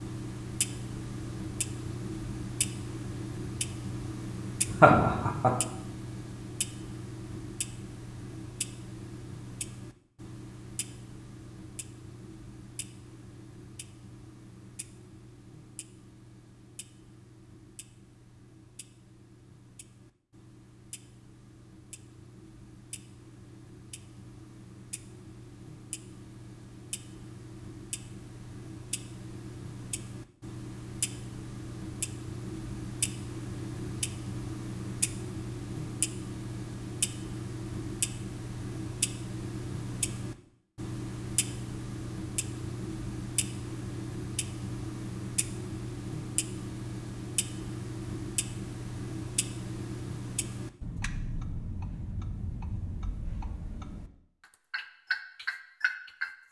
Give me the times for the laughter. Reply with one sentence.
The laughter can be heard from 4.7 to 5.5 s.